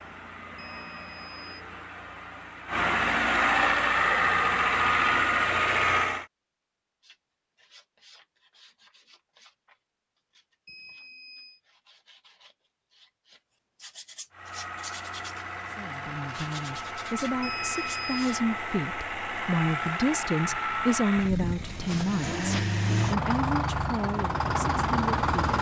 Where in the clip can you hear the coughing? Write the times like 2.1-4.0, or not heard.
not heard.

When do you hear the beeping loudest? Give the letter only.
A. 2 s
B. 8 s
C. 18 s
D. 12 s
C.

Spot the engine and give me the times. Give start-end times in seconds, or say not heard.
0.0-6.2, 14.3-25.5.